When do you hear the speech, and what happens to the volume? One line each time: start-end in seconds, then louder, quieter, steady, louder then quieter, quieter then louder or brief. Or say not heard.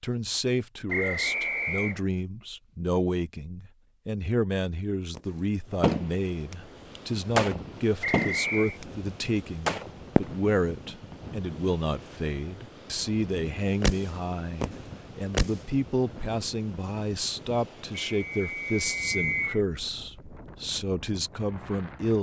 0.0-22.1 steady.